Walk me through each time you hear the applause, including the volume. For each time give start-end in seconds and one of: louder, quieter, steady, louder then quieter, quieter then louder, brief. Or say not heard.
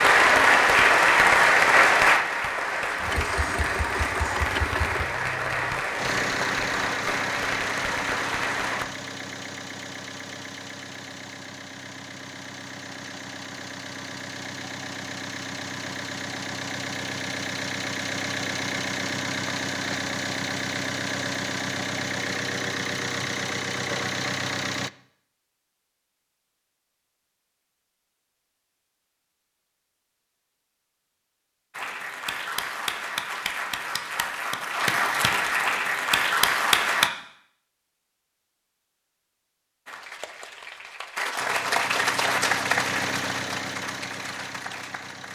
0.0-8.8 quieter
31.7-37.1 louder
39.9-45.3 louder then quieter.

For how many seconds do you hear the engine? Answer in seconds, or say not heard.
26 s.